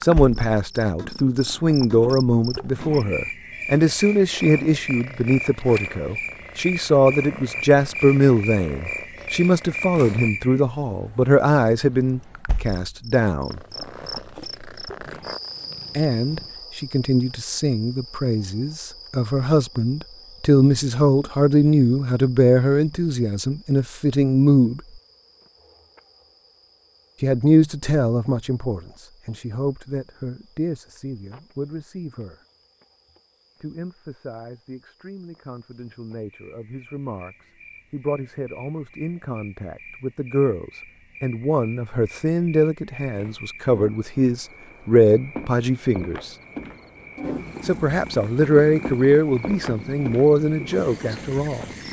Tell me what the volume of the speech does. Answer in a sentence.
The loudness of the speech goes down, then up.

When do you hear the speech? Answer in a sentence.
You can hear the speech from 0.0 to 13.6 s, from 15.9 to 24.8 s, from 27.2 to 32.4 s, from 33.6 to 46.4 s and from 47.6 to 51.6 s.